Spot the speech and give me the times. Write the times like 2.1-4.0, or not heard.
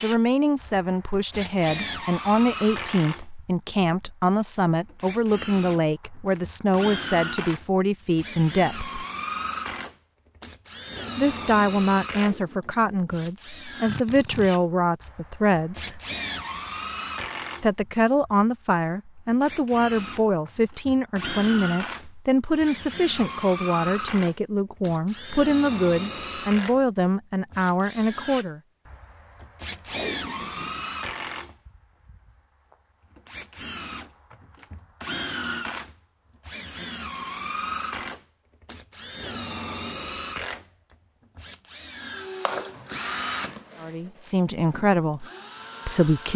0.0-9.1, 11.2-16.0, 17.6-28.6, 43.8-45.2, 45.9-46.3.